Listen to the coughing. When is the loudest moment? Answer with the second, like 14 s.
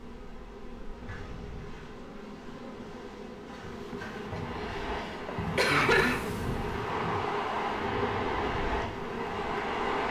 6 s.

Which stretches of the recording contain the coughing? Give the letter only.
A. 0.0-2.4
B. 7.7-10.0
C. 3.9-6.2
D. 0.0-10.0
C.